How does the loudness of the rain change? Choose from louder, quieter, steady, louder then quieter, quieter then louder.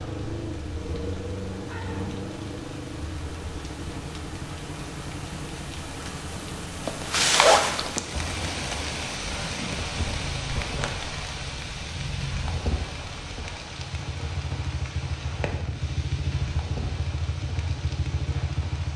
louder then quieter.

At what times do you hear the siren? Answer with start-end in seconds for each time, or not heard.
not heard.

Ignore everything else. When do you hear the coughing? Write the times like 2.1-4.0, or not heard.
not heard.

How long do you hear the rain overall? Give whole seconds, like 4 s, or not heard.
19 s.